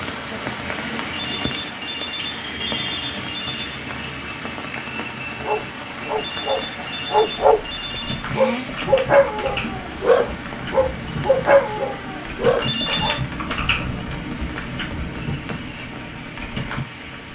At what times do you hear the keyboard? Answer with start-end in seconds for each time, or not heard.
7.8-17.2.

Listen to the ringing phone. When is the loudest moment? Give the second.
13 s.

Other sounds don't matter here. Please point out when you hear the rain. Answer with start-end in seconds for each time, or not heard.
0.0-17.2.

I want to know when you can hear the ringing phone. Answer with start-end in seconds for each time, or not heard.
1.1-3.8, 6.2-8.3, 12.6-13.2.